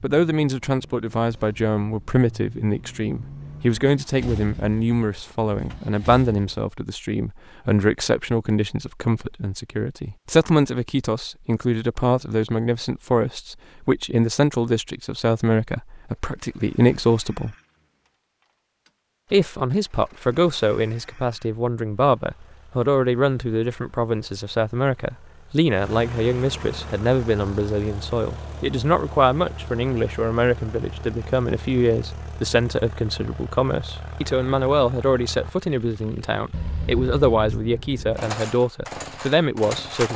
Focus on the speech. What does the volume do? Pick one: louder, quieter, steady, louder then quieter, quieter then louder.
steady.